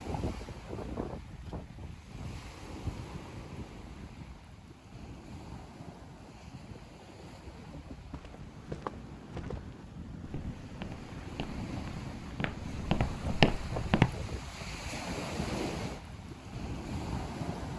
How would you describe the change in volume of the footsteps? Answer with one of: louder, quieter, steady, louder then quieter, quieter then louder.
quieter then louder.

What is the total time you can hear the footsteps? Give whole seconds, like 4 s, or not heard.
6 s.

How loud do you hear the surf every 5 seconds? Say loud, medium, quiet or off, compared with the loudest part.
medium, medium, loud, loud.